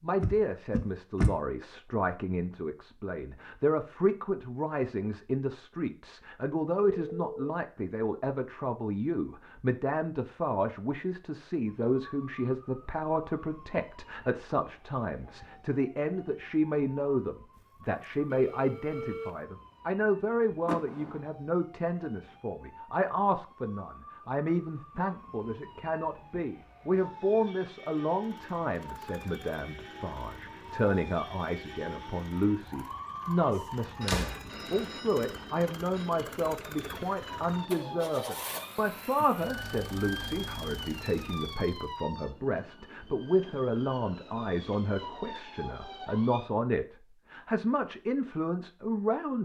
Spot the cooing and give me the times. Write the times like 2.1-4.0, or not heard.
not heard.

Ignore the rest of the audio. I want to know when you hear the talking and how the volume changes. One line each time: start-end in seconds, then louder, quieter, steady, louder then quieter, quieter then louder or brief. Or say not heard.
0.0-49.4 steady.